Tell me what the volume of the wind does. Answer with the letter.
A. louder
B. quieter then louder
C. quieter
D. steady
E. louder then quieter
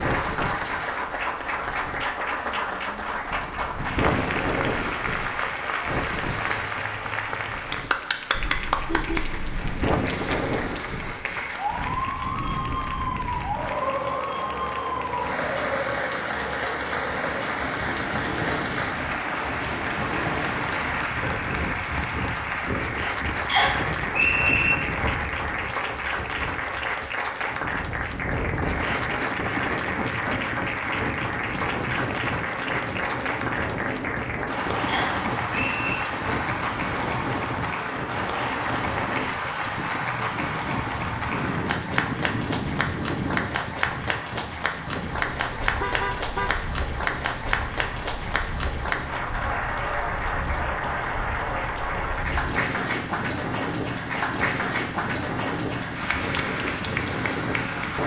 D.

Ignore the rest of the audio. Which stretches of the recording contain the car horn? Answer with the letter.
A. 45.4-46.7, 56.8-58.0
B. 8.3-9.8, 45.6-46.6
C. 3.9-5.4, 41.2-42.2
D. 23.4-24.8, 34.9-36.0
B.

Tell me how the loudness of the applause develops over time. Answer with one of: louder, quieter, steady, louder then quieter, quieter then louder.
steady.